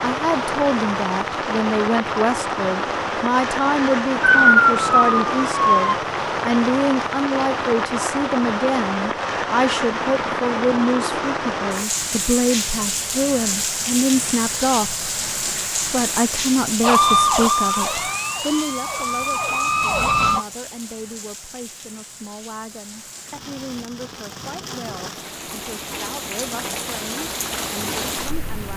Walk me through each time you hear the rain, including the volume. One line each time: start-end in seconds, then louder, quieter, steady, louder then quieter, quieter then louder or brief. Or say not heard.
0.0-28.7 quieter.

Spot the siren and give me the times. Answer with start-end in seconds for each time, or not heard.
4.2-6.0, 16.8-20.4.